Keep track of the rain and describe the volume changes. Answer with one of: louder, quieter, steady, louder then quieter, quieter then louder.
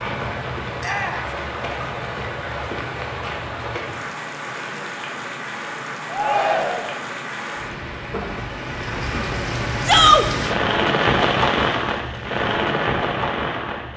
louder.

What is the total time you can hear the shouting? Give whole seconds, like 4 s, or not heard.
2 s.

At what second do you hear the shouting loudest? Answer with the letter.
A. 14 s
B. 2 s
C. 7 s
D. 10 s
D.